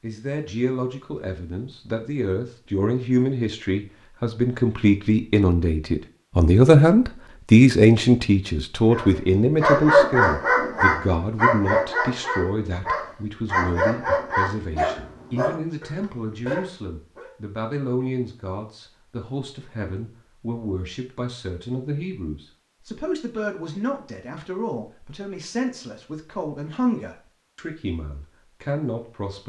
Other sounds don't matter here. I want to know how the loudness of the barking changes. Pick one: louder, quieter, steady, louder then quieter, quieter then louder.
quieter.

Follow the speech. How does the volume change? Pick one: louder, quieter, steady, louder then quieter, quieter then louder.
louder then quieter.